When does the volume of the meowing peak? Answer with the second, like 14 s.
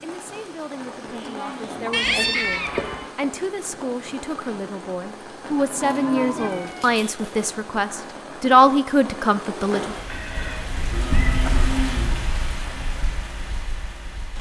2 s.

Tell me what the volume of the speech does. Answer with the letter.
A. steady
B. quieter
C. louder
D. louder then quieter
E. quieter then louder
C.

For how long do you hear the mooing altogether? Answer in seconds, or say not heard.
4 s.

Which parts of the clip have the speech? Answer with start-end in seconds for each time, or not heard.
0.0-9.9.